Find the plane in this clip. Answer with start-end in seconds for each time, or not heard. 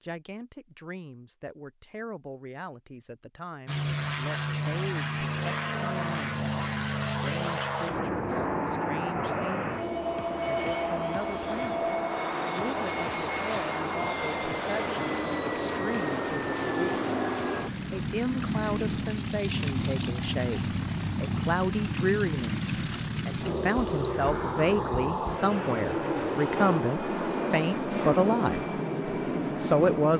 3.6-30.1.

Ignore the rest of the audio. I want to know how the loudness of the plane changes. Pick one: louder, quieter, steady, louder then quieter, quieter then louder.
steady.